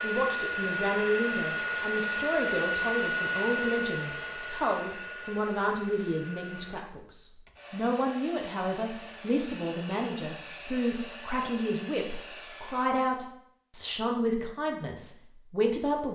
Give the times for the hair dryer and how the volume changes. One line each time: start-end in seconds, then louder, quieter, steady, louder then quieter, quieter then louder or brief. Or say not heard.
0.0-12.9 quieter.